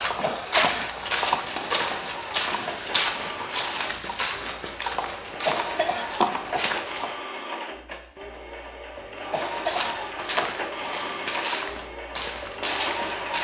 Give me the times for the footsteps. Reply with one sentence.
The footsteps can be heard from 0.0 to 7.2 s and from 9.6 to 13.3 s.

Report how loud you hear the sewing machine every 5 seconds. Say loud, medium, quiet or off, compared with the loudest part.
medium, loud, loud.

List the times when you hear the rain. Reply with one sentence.
You can't hear the rain here.